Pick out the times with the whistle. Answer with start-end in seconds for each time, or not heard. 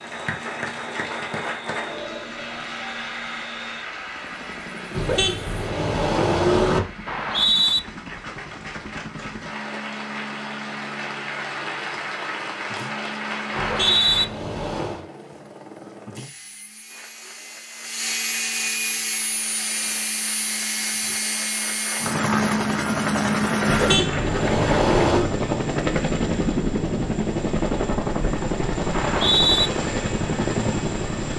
7.0-7.8, 13.5-14.2, 28.9-29.7.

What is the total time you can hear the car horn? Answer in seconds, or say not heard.
5 s.